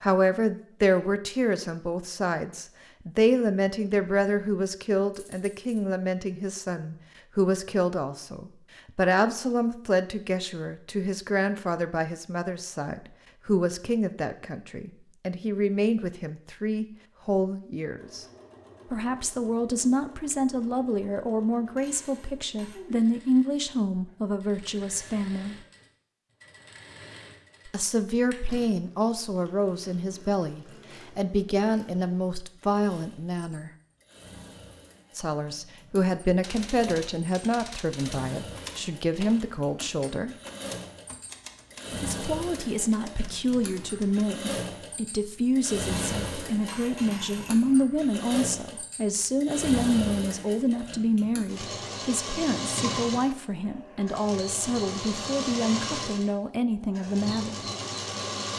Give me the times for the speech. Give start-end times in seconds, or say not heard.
0.0-18.2, 18.9-25.6, 27.6-33.7, 35.1-40.4, 41.9-57.6.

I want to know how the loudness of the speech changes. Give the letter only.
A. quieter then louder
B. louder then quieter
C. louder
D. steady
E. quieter
D.